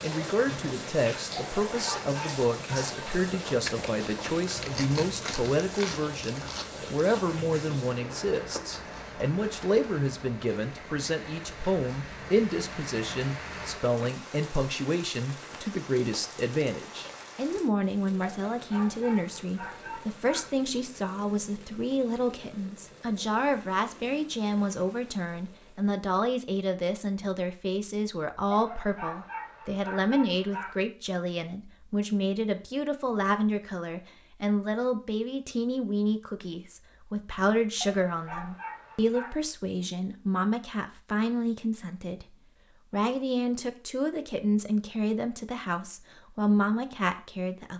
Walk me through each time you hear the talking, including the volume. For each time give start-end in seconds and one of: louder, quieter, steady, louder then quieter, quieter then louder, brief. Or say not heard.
0.0-47.7 steady.